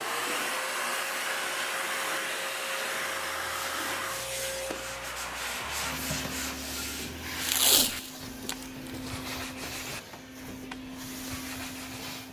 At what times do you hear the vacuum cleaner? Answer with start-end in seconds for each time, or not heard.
0.0-12.2.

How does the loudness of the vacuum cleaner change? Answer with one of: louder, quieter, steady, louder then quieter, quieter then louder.
quieter.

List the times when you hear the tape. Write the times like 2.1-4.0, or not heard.
7.4-9.2.